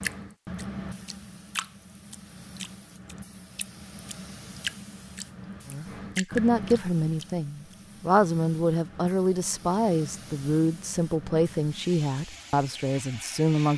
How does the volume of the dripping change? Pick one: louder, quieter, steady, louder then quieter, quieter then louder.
quieter then louder.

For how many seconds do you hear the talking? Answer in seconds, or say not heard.
8 s.